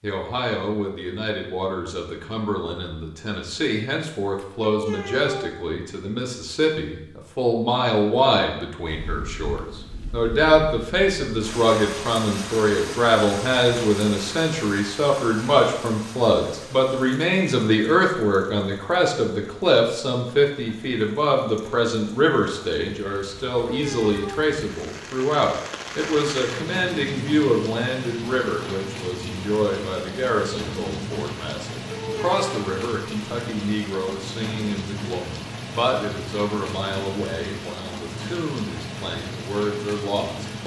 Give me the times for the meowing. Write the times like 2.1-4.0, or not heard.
4.6-5.5, 23.6-24.5, 31.9-32.7.